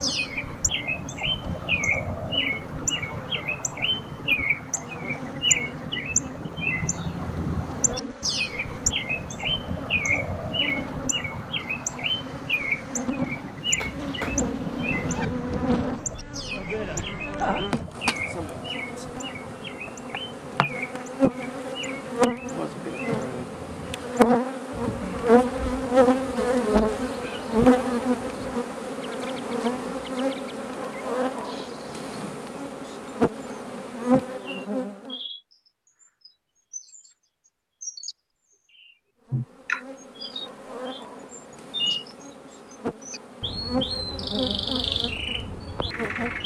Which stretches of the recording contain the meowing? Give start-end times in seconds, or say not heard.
13.2-15.2.